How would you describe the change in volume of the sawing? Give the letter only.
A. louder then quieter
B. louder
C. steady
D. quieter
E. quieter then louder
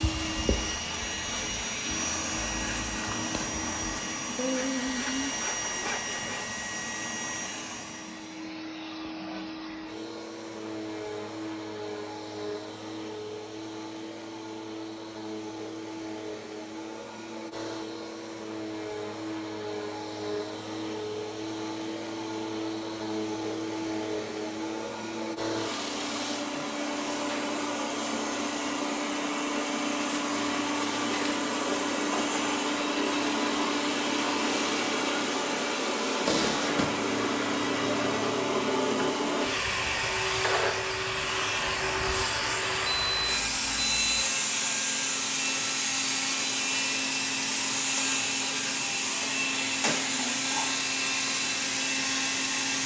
B.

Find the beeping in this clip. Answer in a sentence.
You can hear the beeping from 42.9 to 44.2 s.